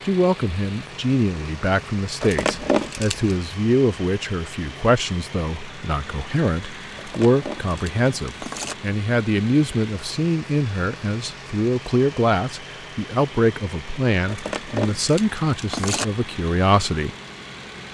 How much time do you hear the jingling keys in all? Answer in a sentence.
You can hear the jingling keys for 5 seconds altogether.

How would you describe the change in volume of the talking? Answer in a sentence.
The volume of the talking stays about the same.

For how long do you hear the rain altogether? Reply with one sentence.
You can't hear the rain here.